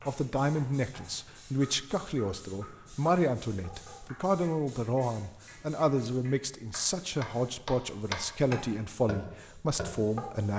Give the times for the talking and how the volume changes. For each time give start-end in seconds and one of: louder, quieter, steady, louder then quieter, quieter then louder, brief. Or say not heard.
0.1-10.5 steady.